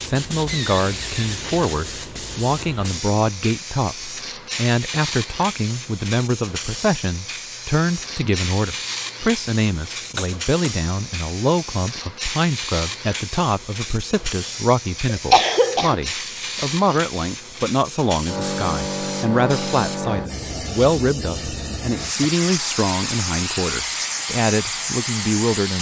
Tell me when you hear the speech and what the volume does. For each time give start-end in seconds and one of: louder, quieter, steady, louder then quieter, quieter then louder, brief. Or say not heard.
0.1-25.7 steady.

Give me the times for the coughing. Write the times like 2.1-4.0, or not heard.
10.2-10.8, 15.1-15.9.